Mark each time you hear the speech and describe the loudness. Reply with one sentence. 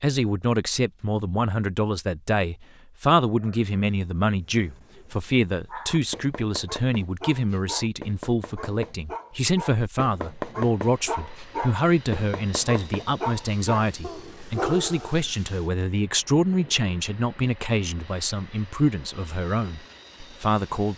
You can hear the speech from 0.0 to 20.9 s, at a steady volume.